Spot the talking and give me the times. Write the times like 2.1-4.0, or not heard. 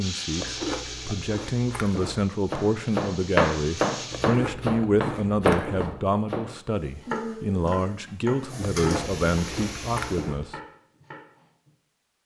0.0-10.6.